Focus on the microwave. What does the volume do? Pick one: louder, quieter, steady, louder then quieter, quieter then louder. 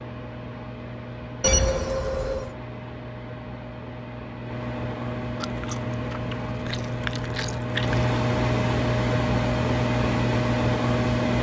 louder.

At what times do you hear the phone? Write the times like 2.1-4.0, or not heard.
1.4-2.5.